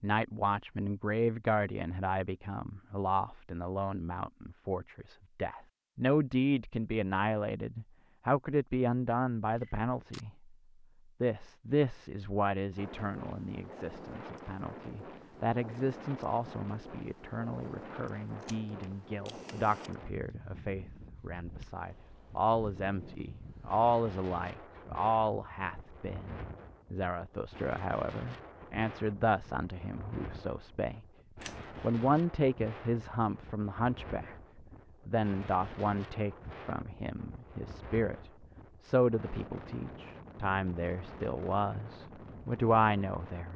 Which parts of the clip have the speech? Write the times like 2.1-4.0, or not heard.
0.0-10.5, 11.2-31.1, 31.8-34.4, 35.0-38.1, 38.8-43.5.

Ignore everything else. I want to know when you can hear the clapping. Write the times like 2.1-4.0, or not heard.
not heard.